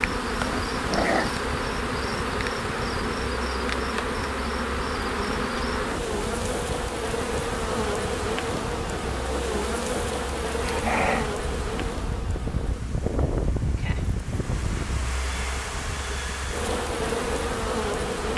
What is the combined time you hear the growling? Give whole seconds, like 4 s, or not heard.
2 s.